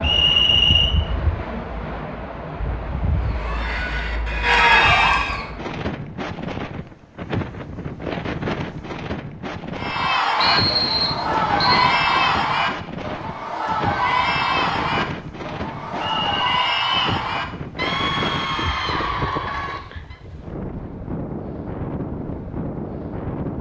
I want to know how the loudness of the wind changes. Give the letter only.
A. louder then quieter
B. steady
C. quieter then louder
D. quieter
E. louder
B.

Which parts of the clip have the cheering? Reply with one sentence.
The cheering can be heard from 3.2 to 5.5 s and from 9.8 to 20.1 s.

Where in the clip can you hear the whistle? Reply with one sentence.
You can hear the whistle from 0.0 to 0.9 s, from 10.3 to 11.8 s and from 16.0 to 17.1 s.